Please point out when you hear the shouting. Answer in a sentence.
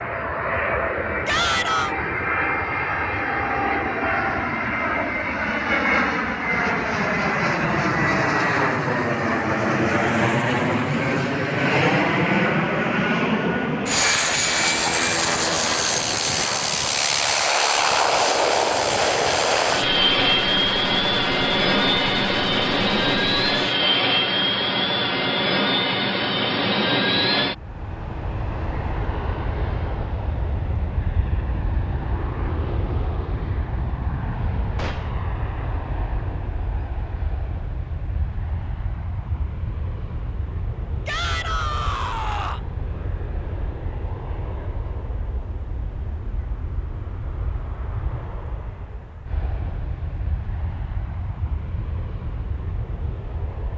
You can hear the shouting from 1.2 to 1.9 s, from 23.6 to 24.1 s and from 41.0 to 42.6 s.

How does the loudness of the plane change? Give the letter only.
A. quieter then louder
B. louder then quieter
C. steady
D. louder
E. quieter
E.